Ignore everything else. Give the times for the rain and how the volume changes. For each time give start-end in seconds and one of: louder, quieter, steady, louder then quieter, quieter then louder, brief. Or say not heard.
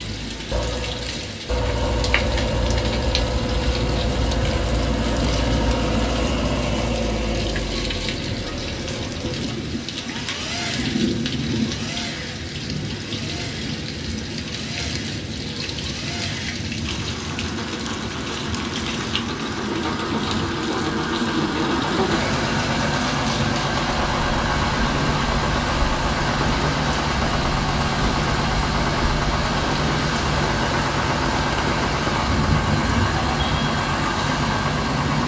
0.0-35.2 steady.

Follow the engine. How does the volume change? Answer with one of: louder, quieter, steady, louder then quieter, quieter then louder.
quieter then louder.